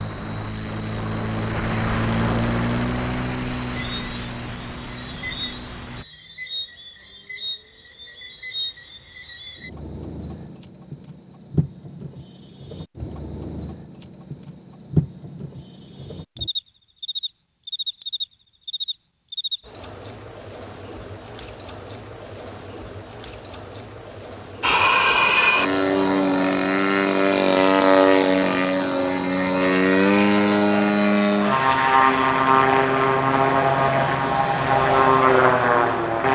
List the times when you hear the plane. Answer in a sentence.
You can hear the plane from 0.0 to 6.0 s and from 24.6 to 36.2 s.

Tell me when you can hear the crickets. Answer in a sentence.
The crickets can be heard from 0.0 to 36.2 s.